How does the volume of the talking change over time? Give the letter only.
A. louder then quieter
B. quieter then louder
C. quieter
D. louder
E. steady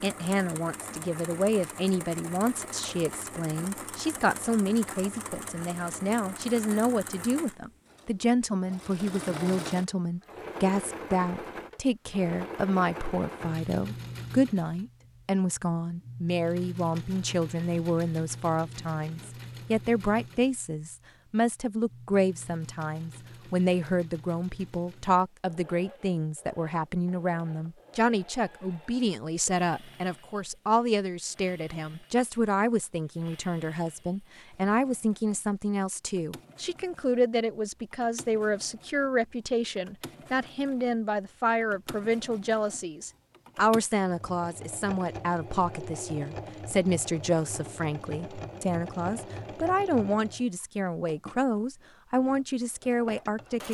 E.